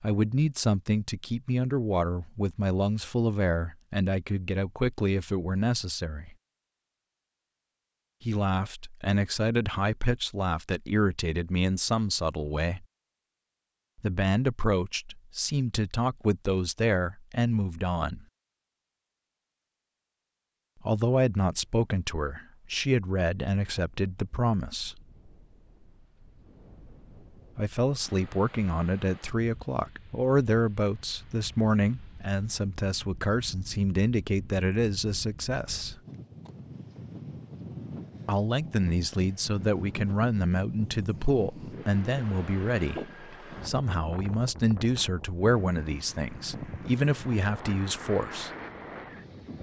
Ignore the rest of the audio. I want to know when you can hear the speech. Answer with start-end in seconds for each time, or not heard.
0.0-6.3, 8.2-12.8, 14.0-18.2, 20.8-24.9, 27.6-36.0, 38.2-48.5.